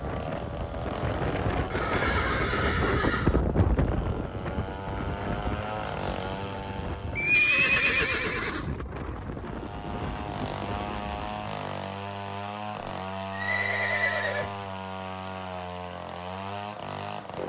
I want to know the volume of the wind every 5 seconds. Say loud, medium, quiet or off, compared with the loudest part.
loud, medium, medium, off.